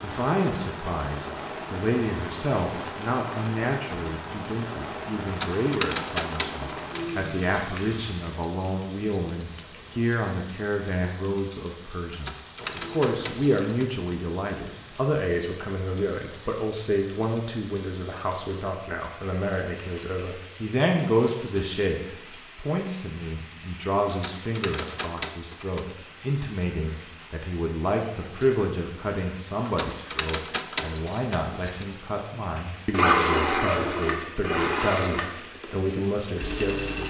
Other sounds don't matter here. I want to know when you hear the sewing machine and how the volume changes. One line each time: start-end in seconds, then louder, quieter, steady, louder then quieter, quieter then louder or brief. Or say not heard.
32.9-37.0 quieter then louder.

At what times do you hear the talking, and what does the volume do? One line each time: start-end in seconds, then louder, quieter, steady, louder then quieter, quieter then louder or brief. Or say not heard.
0.0-37.0 steady.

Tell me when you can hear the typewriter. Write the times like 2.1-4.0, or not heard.
5.2-7.0, 12.1-13.9, 24.1-25.9, 29.6-31.4.